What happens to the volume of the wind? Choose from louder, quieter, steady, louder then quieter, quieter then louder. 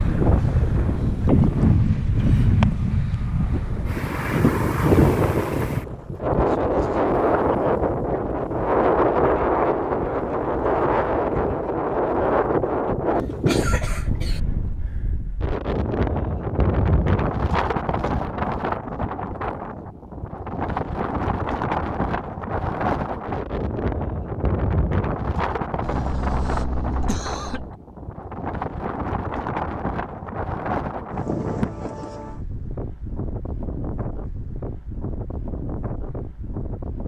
quieter.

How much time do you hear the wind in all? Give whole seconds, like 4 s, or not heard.
37 s.